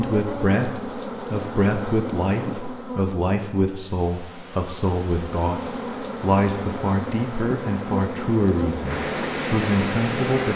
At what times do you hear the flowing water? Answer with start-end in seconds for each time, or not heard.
3.8-10.5.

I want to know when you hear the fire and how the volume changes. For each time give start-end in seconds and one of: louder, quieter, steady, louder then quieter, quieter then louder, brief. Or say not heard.
not heard.